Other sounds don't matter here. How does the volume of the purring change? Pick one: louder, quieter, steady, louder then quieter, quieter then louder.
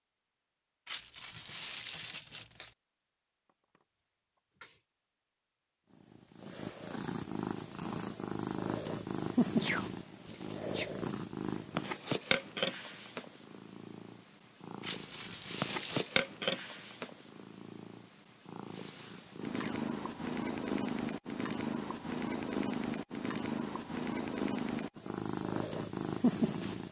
steady.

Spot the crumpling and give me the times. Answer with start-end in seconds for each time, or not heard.
0.8-2.8, 14.8-16.1.